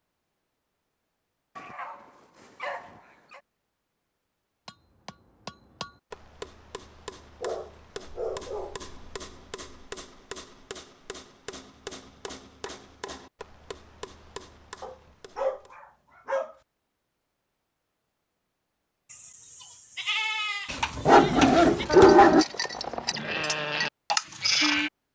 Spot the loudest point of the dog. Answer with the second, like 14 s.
22 s.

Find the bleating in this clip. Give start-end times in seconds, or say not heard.
19.1-24.9.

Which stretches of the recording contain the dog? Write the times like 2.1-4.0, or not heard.
1.6-3.4, 7.4-8.8, 14.8-16.6, 20.6-22.4.